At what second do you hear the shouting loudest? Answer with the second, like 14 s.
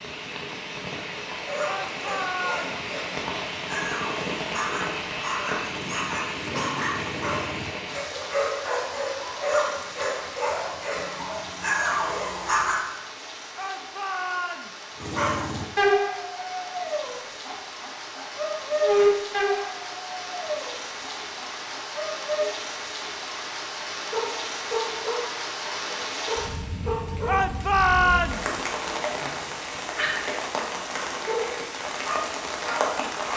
28 s.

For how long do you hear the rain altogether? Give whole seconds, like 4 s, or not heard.
33 s.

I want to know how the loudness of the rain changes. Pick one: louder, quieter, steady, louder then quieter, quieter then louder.
quieter then louder.